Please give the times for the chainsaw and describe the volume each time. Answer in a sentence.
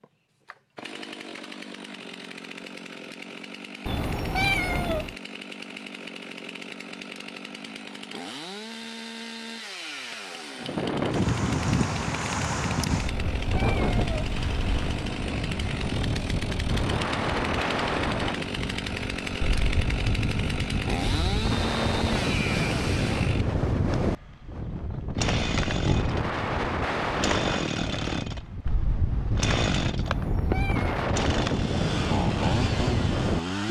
You can hear the chainsaw from 0.0 to 33.6 s, getting louder.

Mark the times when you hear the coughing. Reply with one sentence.
The coughing can't be heard in this clip.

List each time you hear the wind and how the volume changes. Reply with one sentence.
The wind can be heard from 10.6 to 33.6 s, at a steady volume.